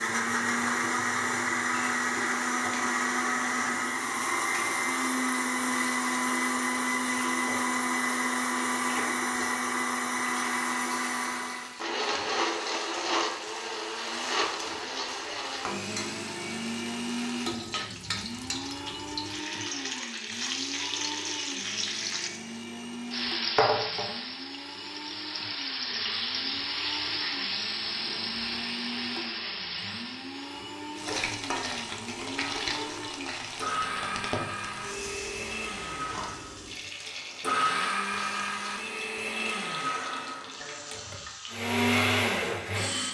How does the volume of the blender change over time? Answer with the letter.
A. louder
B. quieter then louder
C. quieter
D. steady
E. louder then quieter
B.